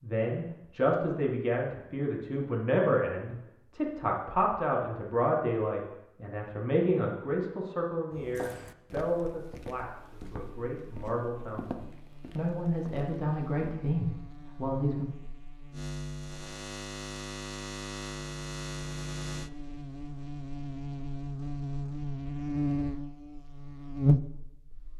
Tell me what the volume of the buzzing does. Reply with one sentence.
The loudness of the buzzing goes up.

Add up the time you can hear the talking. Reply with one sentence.
You can hear the talking for 15 seconds altogether.